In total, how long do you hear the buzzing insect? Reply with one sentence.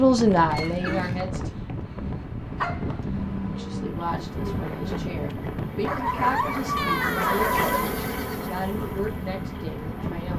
The buzzing insect can be heard for 7 seconds in total.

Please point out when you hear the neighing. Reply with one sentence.
You can hear the neighing from 0.5 to 1.3 s and from 6.8 to 8.5 s.